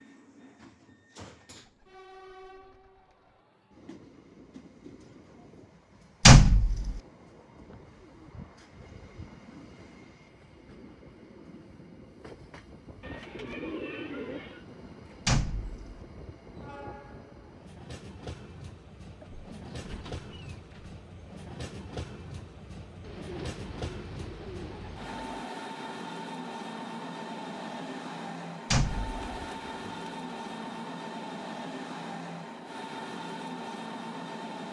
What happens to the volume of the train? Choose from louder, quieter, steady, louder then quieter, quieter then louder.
louder.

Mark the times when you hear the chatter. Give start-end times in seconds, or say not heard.
not heard.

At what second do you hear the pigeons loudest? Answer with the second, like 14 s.
14 s.